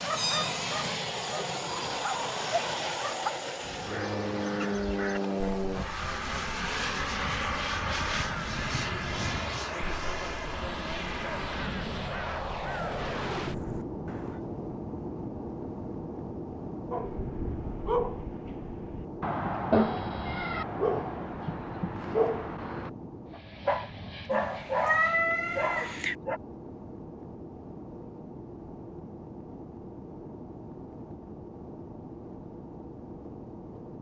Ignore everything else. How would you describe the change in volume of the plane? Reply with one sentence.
The volume of the plane goes down.